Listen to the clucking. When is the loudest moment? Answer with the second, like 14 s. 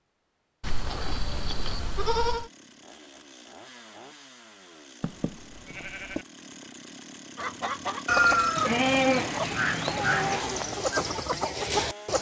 8 s.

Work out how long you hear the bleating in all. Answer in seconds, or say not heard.
5 s.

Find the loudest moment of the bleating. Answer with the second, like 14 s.
9 s.